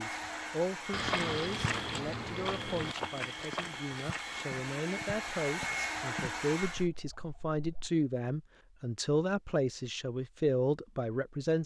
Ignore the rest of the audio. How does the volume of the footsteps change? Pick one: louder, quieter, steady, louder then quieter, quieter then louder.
quieter.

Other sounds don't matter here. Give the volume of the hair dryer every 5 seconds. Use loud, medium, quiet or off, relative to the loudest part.
medium, loud, off.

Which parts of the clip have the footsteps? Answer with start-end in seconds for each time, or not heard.
0.8-6.8.